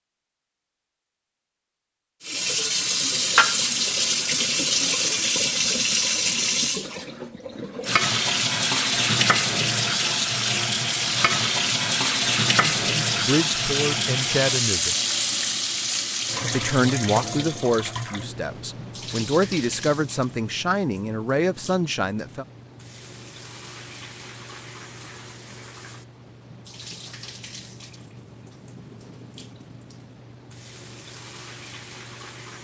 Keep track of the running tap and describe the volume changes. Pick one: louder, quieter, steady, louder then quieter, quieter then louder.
quieter.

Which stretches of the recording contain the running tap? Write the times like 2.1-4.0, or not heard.
2.2-32.5.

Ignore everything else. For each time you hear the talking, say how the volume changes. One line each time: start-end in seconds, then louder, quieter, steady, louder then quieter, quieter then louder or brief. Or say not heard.
12.8-14.9 brief
16.5-22.4 quieter then louder.